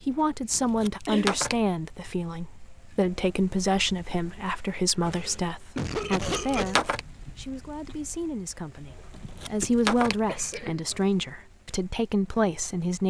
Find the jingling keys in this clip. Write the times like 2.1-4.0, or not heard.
0.6-1.6, 6.0-7.0, 9.1-10.7.